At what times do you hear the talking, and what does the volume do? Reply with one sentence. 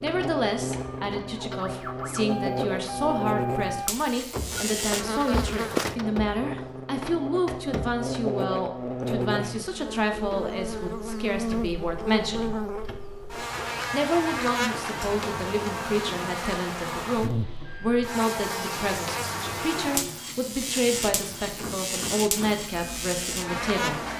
You can hear the talking from 0.0 to 12.6 s, at a steady volume; and from 13.9 to 24.0 s, at a steady volume.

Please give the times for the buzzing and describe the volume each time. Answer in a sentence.
The buzzing can be heard from 0.0 to 24.1 s, at a steady volume.